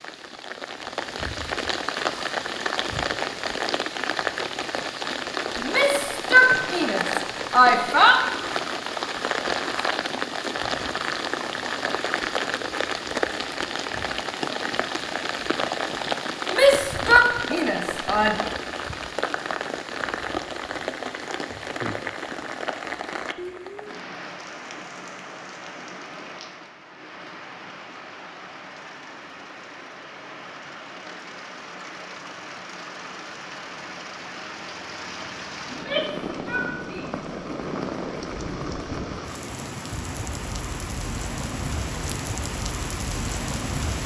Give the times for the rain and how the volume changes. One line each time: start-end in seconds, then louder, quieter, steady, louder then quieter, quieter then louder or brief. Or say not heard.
0.0-44.0 quieter then louder.